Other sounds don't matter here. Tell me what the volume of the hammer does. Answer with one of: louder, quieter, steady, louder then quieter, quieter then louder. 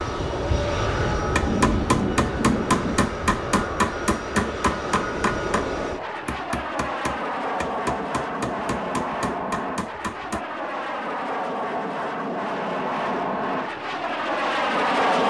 quieter.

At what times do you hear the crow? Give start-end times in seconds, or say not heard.
not heard.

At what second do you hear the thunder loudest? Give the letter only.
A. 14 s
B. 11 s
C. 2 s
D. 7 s
C.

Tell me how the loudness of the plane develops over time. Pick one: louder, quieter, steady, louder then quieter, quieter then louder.
steady.